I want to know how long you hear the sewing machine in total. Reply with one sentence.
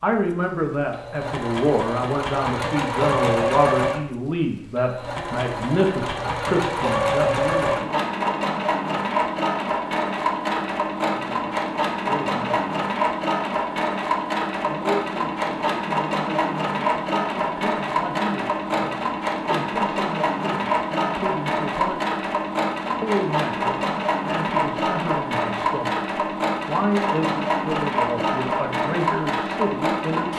The sewing machine can be heard for 30 seconds in total.